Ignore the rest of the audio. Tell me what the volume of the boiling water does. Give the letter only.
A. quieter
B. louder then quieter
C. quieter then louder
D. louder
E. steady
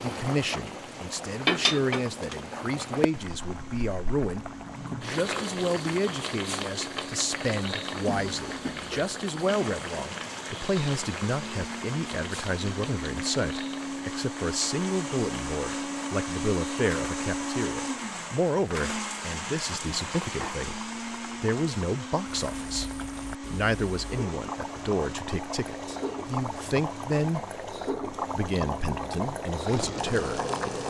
C.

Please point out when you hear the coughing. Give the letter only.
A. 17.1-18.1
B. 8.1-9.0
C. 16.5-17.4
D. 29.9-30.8
B.